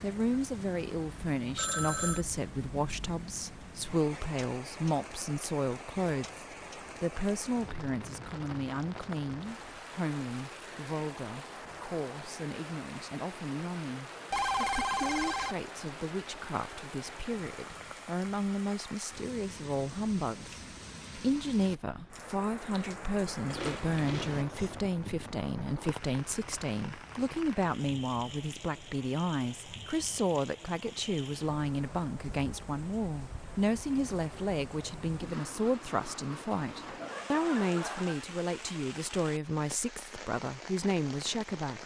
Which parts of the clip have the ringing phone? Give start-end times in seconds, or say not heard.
1.6-2.2, 14.3-15.6, 36.9-38.2.